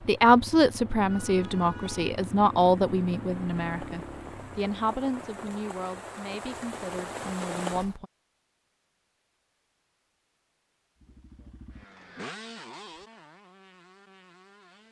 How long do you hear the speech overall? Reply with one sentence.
The speech can be heard for 8 seconds in total.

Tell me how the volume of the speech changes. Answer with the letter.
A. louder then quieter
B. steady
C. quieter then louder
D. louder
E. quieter
E.